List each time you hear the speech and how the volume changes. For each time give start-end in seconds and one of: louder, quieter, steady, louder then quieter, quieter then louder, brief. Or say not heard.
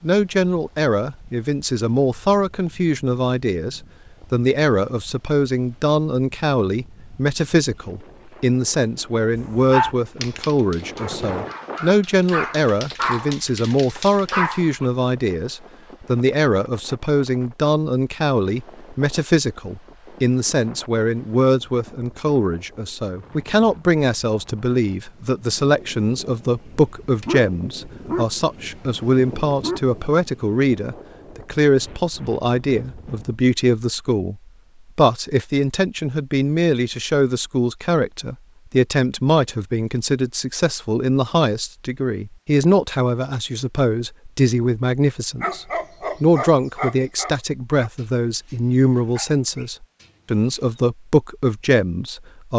0.0-52.5 steady.